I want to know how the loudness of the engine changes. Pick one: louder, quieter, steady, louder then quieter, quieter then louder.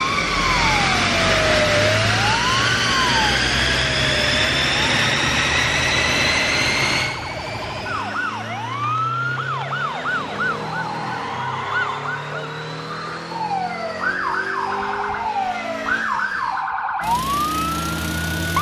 quieter.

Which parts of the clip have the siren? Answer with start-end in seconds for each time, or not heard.
0.0-18.5.